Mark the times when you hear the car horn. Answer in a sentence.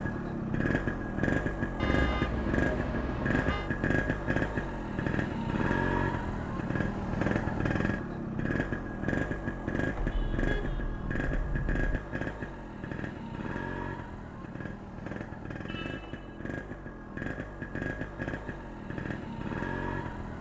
The car horn can be heard from 1.8 to 3.7 s, from 9.9 to 11.8 s and from 15.7 to 16.4 s.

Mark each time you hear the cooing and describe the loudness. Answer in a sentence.
The cooing can't be heard in this clip.